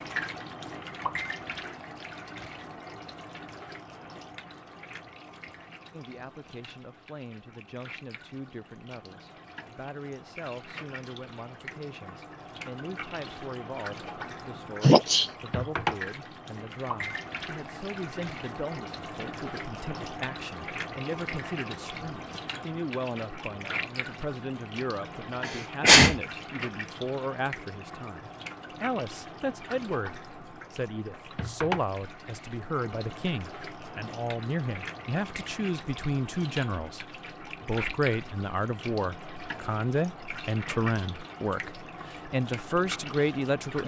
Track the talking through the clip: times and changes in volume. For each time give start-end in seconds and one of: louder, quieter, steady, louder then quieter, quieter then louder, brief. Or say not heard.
5.9-43.8 louder.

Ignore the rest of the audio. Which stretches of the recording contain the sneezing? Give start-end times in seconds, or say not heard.
14.8-15.2, 25.4-26.2.